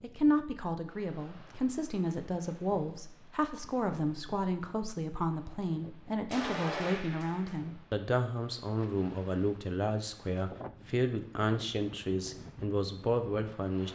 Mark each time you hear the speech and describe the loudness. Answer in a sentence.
You can hear the speech from 0.0 to 13.9 s, at a steady volume.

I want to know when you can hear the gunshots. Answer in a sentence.
The gunshots can be heard from 6.3 to 7.6 s.